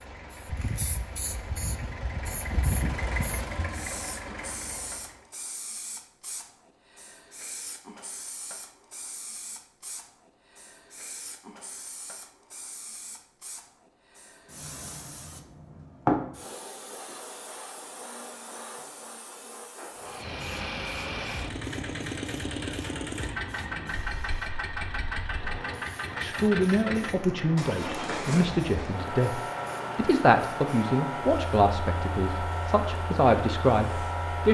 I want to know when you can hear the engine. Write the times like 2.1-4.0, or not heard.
0.0-5.2, 19.9-34.4.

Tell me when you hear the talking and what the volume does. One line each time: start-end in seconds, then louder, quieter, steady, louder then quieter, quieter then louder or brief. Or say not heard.
26.1-34.4 steady.